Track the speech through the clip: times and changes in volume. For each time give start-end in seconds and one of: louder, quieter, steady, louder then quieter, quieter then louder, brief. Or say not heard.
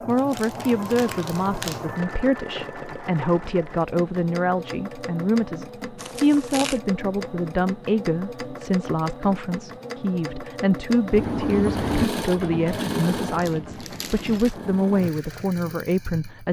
0.1-16.4 steady.